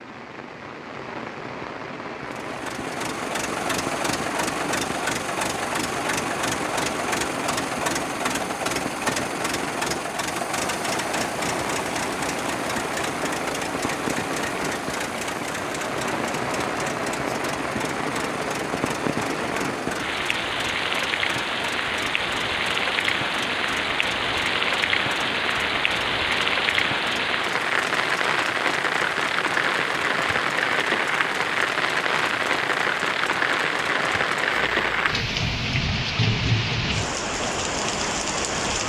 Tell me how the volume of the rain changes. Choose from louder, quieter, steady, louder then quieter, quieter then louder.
louder.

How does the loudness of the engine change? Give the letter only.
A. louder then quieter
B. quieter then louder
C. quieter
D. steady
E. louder
C.